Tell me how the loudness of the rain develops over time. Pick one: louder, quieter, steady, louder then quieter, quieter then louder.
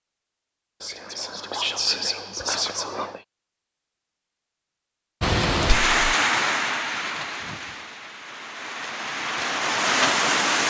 quieter then louder.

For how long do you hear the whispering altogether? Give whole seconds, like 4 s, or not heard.
3 s.